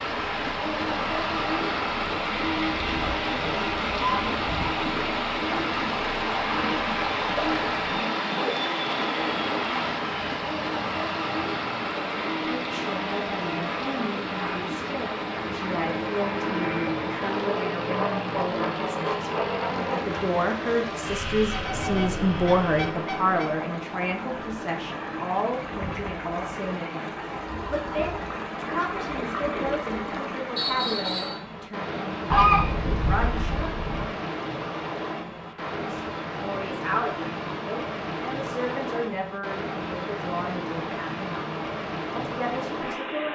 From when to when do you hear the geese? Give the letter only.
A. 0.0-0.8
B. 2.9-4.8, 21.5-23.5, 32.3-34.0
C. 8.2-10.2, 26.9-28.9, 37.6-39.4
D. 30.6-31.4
B.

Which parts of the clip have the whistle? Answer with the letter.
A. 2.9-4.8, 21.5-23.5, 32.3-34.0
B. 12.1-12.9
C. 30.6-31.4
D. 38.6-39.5
C.